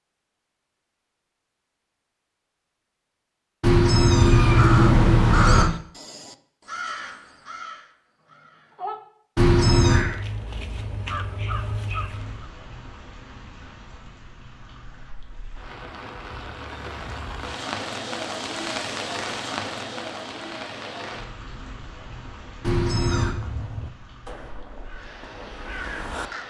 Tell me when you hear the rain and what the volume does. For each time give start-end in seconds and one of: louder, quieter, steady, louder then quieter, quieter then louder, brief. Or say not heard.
12.1-26.4 louder then quieter.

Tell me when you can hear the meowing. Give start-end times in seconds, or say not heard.
3.6-5.7, 9.3-10.1, 22.6-23.4.